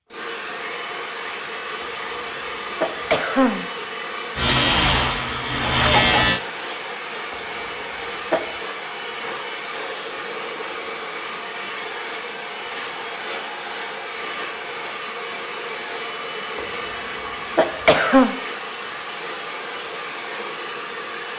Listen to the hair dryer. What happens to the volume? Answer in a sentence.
The loudness of the hair dryer stays about the same.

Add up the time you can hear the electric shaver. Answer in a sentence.
The electric shaver can be heard for 2 seconds in total.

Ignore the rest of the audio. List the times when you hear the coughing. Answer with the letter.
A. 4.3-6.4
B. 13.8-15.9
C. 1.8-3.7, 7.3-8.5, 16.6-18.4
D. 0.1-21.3
C.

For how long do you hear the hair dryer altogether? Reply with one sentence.
You can hear the hair dryer for 21 seconds altogether.